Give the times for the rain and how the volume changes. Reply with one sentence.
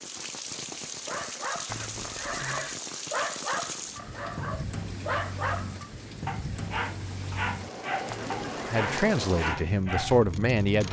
You can hear the rain from 0.0 to 10.8 s, at a steady volume.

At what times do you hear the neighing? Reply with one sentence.
You can hear the neighing from 1.6 to 2.8 s and from 8.1 to 9.1 s.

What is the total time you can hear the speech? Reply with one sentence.
The speech can be heard for 2 seconds in total.